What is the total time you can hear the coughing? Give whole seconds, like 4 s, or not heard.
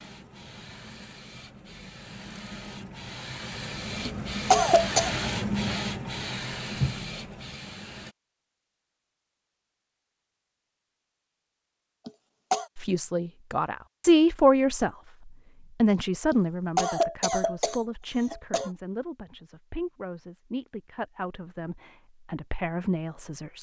4 s.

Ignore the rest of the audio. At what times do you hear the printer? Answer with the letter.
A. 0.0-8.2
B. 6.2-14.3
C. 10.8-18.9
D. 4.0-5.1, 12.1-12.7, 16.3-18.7
A.